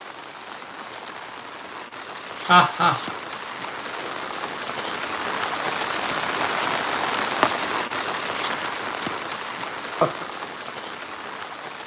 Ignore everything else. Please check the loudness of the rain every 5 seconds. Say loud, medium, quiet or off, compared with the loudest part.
medium, loud, medium.